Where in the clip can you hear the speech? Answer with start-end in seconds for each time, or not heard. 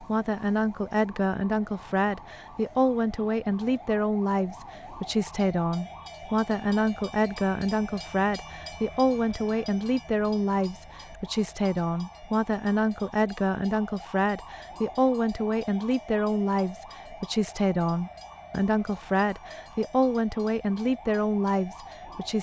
0.0-22.3.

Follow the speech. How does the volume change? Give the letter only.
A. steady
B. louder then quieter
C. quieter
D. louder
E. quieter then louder
A.